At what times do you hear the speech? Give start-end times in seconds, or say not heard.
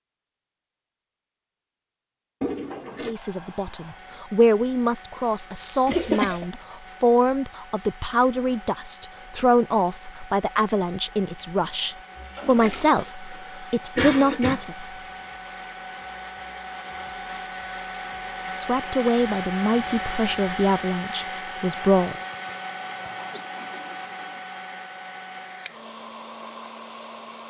3.0-14.8, 18.5-22.1.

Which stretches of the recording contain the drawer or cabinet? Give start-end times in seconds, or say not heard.
not heard.